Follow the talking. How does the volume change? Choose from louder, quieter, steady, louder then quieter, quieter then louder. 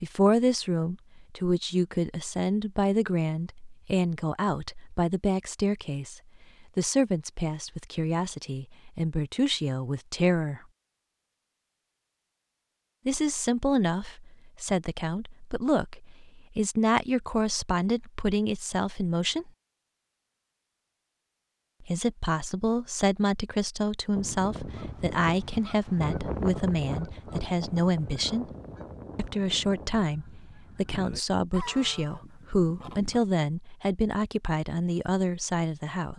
steady.